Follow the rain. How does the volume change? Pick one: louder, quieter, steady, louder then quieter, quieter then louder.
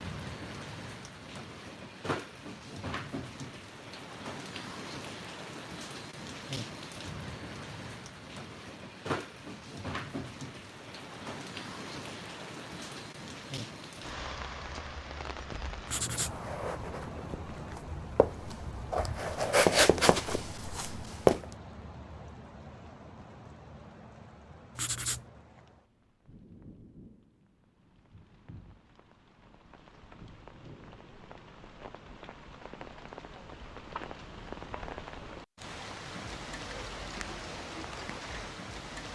quieter then louder.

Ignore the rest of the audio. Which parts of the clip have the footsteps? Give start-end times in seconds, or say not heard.
15.4-21.4.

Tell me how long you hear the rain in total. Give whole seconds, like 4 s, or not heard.
39 s.